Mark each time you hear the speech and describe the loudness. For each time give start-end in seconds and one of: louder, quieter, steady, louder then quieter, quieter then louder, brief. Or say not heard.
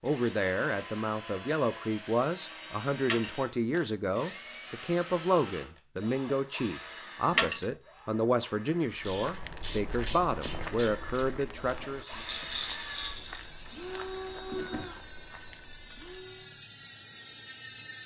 0.0-12.1 steady.